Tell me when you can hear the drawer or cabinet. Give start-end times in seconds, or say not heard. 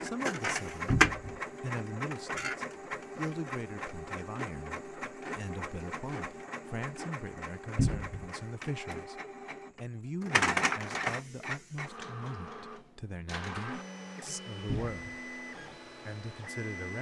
0.9-1.4, 7.8-8.2, 14.7-15.2.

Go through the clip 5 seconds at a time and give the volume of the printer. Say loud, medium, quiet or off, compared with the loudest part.
loud, medium, loud, medium.